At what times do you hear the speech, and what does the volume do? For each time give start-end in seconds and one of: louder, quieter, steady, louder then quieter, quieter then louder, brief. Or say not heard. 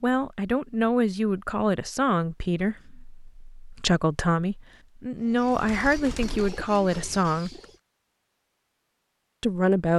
0.0-7.5 steady
9.4-9.9 brief.